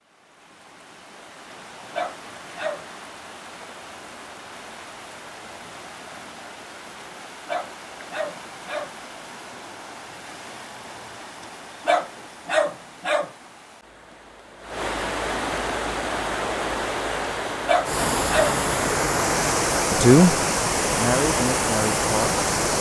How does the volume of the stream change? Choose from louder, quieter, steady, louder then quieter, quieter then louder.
louder.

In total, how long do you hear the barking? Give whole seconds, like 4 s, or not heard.
5 s.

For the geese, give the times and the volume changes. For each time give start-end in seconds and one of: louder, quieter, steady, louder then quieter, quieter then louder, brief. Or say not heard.
not heard.